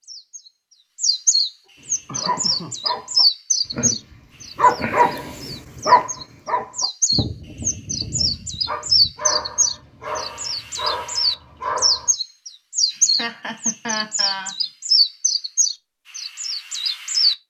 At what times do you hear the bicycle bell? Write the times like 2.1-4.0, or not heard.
not heard.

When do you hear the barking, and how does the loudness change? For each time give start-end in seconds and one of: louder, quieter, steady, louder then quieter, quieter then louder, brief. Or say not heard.
1.8-12.1 louder then quieter.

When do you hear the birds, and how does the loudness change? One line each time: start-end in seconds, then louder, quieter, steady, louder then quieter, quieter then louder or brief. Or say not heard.
0.0-17.4 quieter then louder.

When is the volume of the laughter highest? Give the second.
14 s.